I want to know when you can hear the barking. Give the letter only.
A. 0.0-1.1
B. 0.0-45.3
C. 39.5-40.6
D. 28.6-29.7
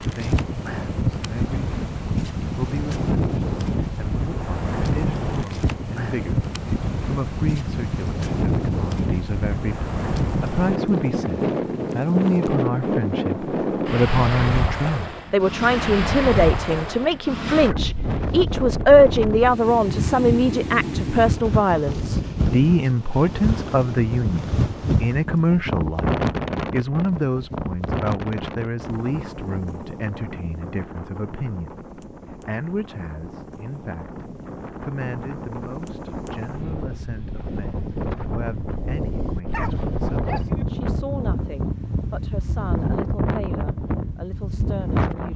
C.